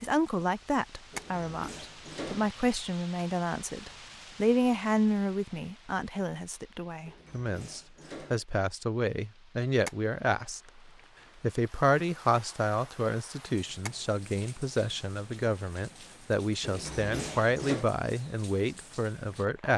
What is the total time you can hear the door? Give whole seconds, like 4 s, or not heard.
4 s.